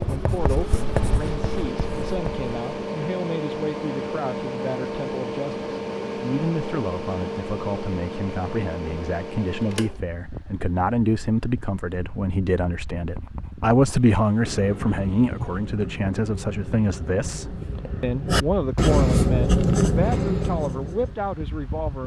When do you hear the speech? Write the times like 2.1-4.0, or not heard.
0.1-22.0.